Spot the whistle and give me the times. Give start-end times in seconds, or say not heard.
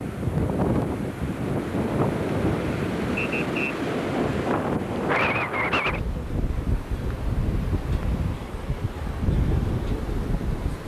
3.1-3.8.